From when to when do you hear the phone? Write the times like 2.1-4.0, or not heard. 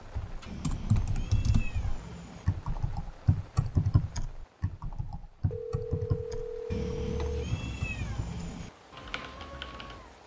5.5-7.5.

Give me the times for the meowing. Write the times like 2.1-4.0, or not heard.
0.5-2.5, 6.7-8.7.